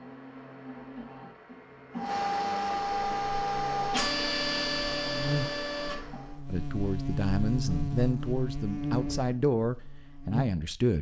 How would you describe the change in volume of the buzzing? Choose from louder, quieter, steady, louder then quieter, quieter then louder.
louder.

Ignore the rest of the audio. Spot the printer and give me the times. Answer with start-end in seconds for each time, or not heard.
0.0-6.5.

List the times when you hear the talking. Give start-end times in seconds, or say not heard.
6.5-10.9.